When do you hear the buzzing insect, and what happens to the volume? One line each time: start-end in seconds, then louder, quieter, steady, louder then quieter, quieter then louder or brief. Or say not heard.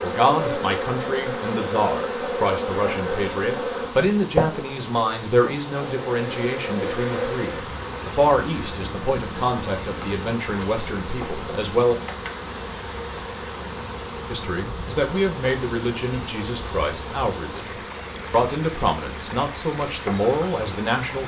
0.0-21.2 quieter.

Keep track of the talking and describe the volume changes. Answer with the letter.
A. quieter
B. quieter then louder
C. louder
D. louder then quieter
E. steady
E.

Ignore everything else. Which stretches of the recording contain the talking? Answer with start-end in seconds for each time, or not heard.
0.0-11.9, 14.3-21.2.